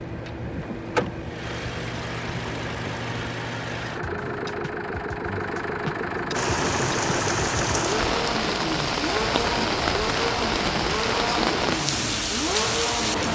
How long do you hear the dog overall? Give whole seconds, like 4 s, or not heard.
not heard.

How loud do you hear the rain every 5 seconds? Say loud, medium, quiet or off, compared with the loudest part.
off, loud, loud.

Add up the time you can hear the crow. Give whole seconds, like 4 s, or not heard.
not heard.